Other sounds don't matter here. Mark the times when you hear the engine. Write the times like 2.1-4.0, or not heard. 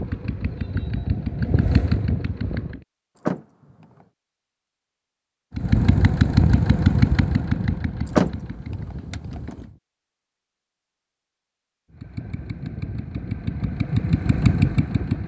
0.0-2.9, 5.5-9.8, 11.9-15.2.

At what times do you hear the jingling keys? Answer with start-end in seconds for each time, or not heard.
3.1-3.9, 8.1-9.6.